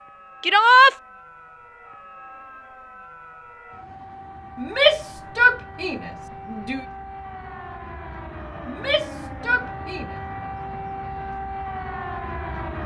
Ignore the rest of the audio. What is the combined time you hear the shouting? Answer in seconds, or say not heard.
4 s.